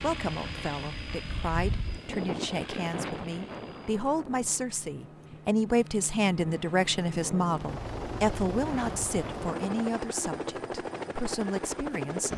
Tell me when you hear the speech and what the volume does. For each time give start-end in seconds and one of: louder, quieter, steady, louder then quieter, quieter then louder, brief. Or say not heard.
0.0-12.3 louder then quieter.